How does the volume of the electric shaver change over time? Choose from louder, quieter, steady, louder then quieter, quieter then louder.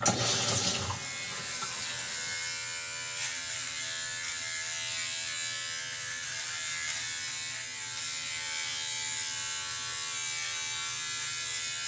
steady.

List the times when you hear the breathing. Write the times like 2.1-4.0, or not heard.
not heard.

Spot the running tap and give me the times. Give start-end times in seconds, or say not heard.
0.0-2.4.